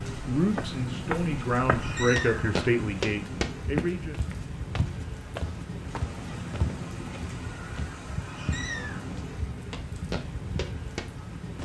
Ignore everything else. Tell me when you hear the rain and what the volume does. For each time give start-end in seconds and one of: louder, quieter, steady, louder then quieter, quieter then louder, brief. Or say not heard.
0.0-11.6 steady.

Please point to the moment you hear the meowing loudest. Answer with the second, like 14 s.
2 s.